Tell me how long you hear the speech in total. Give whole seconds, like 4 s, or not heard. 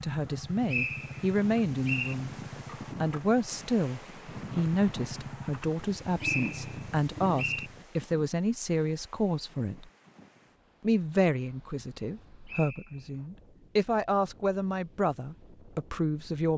15 s.